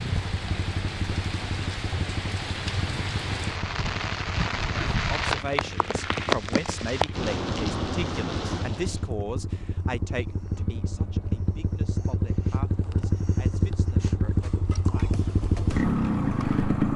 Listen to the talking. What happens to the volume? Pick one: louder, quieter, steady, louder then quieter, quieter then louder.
quieter.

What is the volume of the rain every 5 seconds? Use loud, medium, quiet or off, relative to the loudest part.
loud, loud, off, off.